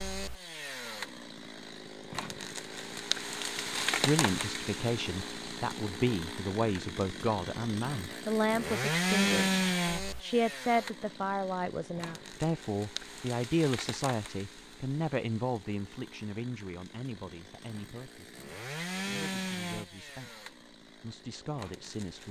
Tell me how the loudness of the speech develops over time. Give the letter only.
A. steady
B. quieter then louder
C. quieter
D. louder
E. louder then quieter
C.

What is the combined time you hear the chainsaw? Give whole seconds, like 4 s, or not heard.
22 s.